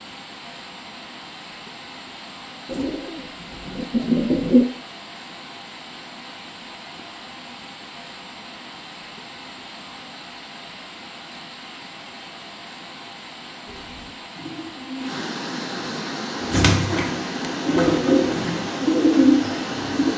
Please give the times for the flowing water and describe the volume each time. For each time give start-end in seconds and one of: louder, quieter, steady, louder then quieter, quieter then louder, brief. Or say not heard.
0.0-20.1 louder.